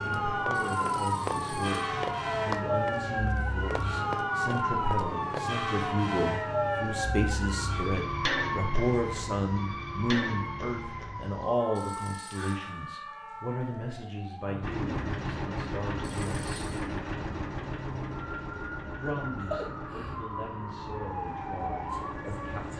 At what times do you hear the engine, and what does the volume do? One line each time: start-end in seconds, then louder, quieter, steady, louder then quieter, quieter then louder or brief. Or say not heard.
14.6-22.7 quieter.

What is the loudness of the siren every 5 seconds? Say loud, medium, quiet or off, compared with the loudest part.
loud, loud, medium, medium, medium.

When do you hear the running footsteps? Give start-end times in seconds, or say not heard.
0.0-5.5.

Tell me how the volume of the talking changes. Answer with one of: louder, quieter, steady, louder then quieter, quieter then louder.
louder then quieter.